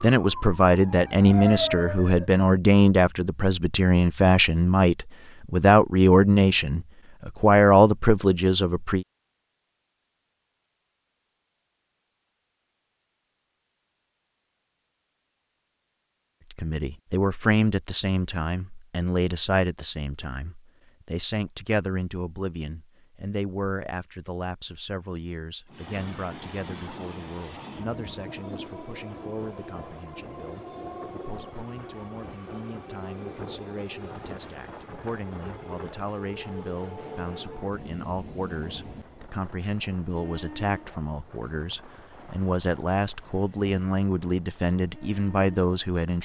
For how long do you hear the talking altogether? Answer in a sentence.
The talking can be heard for 39 seconds in total.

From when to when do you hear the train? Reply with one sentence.
You can hear the train from 25.6 to 46.2 s.